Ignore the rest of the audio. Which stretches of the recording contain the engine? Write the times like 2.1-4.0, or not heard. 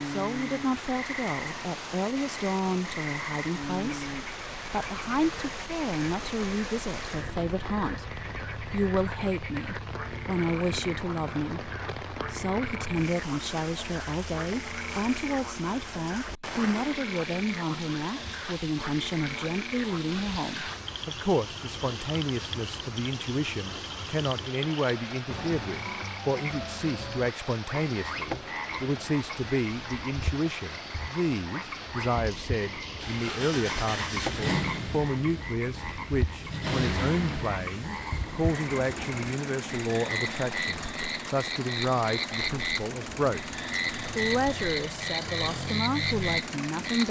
33.0-47.0.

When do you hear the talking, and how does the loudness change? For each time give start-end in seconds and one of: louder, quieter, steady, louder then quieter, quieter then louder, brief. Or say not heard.
0.0-43.5 steady
44.0-47.0 brief.